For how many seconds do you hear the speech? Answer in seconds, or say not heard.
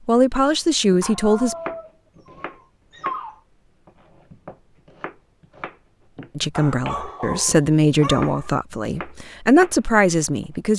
6 s.